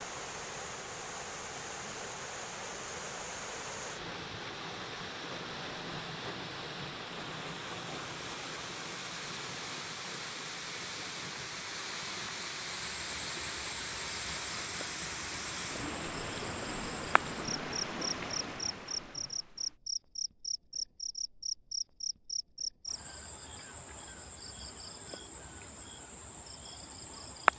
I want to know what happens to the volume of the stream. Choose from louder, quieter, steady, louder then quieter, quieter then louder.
steady.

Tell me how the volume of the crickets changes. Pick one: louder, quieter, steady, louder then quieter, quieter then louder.
louder then quieter.